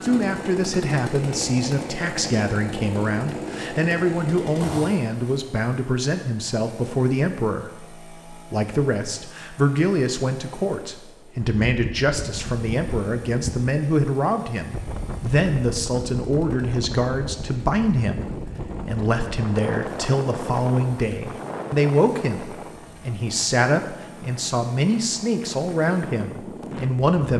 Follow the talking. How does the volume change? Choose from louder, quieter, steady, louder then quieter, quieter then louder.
steady.